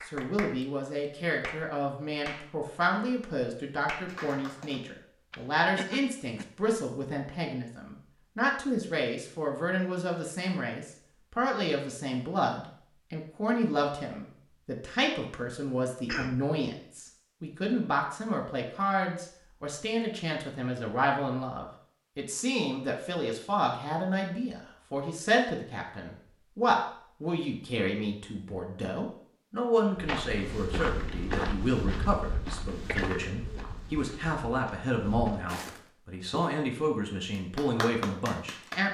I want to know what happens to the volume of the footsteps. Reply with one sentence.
The volume of the footsteps goes down, then up.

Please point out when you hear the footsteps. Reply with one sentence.
You can hear the footsteps from 29.9 to 36.5 s.